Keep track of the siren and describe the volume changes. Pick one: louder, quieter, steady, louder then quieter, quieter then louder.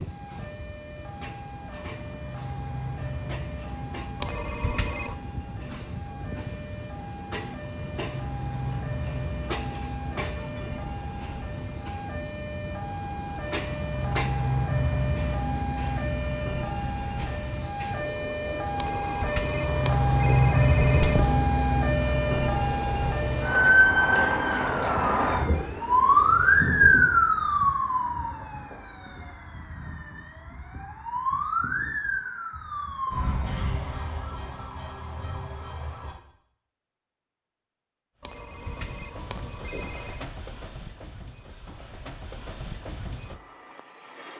louder then quieter.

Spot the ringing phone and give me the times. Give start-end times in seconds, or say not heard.
4.2-5.2, 18.8-21.4, 38.2-40.3.